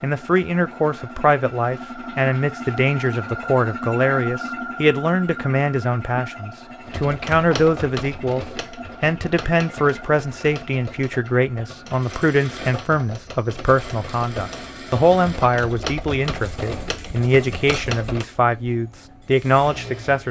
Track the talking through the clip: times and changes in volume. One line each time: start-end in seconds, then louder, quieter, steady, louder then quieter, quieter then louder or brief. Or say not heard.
0.0-20.2 steady.